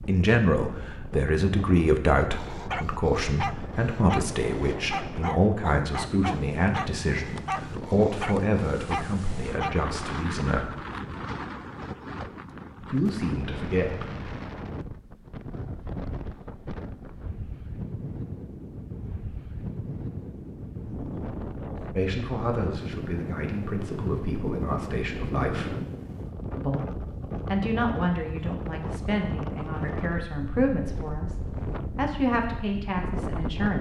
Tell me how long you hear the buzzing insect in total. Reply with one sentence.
You can't hear the buzzing insect here.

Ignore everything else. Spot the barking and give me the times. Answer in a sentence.
The barking can be heard from 2.3 to 10.3 s.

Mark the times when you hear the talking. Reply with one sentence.
The talking can be heard from 0.0 to 10.8 s, from 12.8 to 14.1 s, from 21.9 to 25.8 s and from 26.6 to 33.7 s.